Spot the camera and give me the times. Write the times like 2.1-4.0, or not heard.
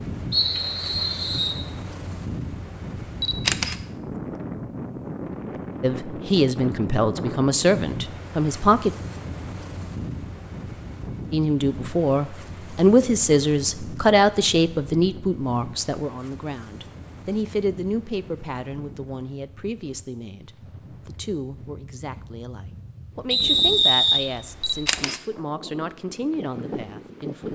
3.2-3.8, 24.6-25.2.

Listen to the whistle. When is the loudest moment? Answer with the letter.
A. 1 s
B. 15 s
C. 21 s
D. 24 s
D.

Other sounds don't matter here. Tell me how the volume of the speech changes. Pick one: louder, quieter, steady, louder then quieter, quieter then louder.
quieter.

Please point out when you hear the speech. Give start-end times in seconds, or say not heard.
5.8-8.9, 11.3-27.4.